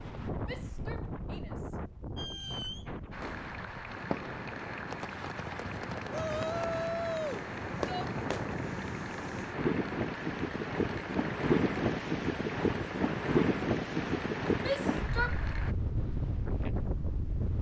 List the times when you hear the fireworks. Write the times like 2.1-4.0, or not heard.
2.1-8.6.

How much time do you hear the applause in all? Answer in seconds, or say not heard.
13 s.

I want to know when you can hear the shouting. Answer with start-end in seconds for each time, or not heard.
0.5-1.8, 6.1-8.1, 14.6-15.4.